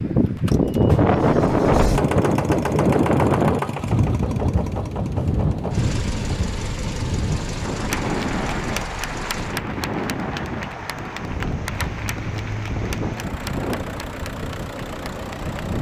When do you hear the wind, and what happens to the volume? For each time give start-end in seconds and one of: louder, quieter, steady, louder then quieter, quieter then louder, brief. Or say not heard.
0.0-15.7 quieter.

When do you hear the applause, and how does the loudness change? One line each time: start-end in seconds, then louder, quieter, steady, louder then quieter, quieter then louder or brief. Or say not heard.
7.8-15.6 quieter.